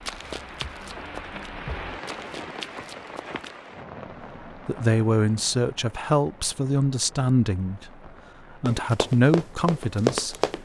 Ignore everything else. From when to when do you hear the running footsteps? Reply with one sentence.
The running footsteps can be heard from 0.0 to 3.5 s and from 8.7 to 10.6 s.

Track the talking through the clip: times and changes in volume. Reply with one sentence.
You can hear the talking from 4.7 to 10.3 s, at a steady volume.